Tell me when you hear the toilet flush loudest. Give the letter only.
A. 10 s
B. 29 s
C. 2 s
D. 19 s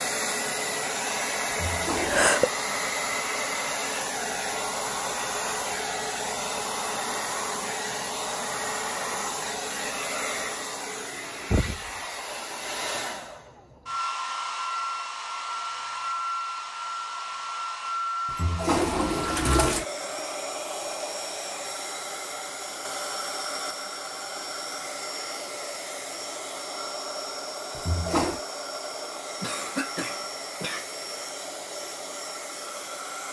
D.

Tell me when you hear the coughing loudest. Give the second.
2 s.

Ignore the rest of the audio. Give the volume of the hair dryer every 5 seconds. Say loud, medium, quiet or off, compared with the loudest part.
loud, loud, loud, loud, medium, medium, medium.